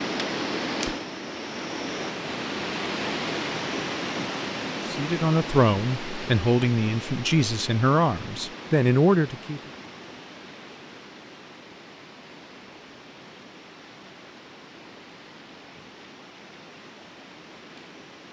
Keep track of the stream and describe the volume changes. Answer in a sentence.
The volume of the stream goes down.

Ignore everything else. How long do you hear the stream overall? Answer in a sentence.
You can hear the stream for 18 seconds altogether.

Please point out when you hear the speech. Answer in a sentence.
You can hear the speech from 4.8 to 9.6 s.